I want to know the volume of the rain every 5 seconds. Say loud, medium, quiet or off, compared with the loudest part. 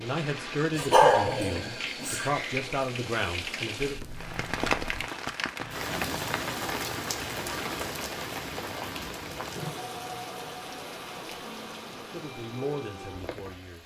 loud, loud, medium.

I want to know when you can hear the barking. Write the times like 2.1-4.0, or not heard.
0.8-2.2.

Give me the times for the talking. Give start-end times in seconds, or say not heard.
0.0-4.0, 11.9-13.8.